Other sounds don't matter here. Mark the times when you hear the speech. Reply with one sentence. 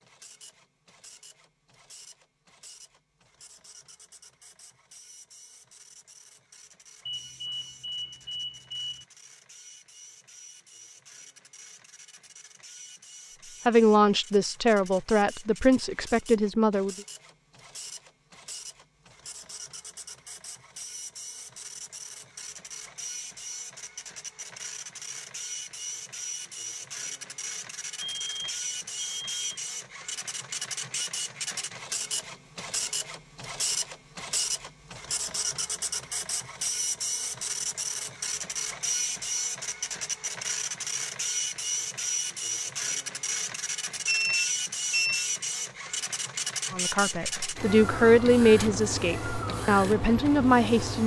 You can hear the speech from 13.7 to 16.9 s and from 46.7 to 51.0 s.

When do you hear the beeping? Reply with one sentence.
You can hear the beeping from 7.0 to 9.1 s, from 27.9 to 29.6 s and from 44.0 to 45.2 s.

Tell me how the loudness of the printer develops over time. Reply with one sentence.
The loudness of the printer goes up.